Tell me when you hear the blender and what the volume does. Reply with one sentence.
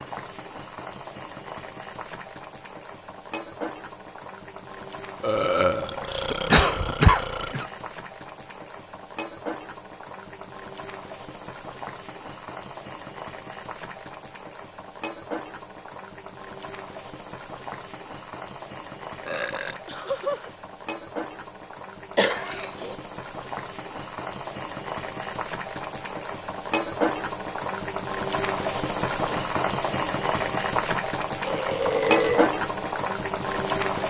The blender can't be heard in this clip.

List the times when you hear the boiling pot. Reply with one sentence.
You can hear the boiling pot from 0.0 to 34.0 s.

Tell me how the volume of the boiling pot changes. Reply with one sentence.
The loudness of the boiling pot goes up.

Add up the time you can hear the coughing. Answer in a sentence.
You can hear the coughing for 2 seconds altogether.